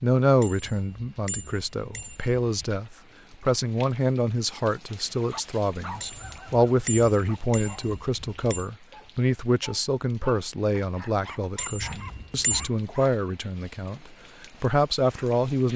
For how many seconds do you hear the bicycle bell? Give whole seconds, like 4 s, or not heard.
6 s.